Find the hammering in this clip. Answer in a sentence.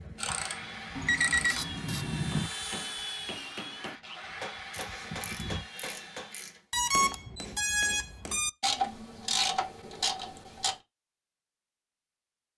The hammering can be heard from 2.3 to 8.4 s.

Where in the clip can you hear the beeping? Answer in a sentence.
You can hear the beeping from 0.9 to 2.5 s and from 6.7 to 8.5 s.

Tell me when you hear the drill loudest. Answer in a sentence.
The loudest moment of the drill is at 3 seconds.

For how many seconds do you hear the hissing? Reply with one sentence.
The hissing can be heard for 6 seconds in total.